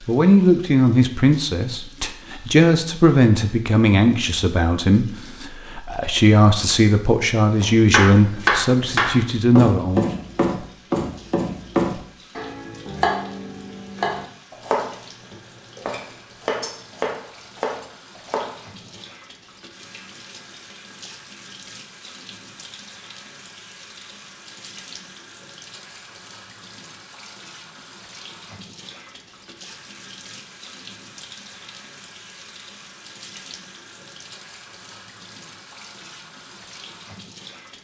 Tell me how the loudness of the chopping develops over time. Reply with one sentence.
The loudness of the chopping goes down.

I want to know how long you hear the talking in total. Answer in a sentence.
The talking can be heard for 10 seconds in total.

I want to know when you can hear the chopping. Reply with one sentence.
You can hear the chopping from 7.6 to 19.0 s.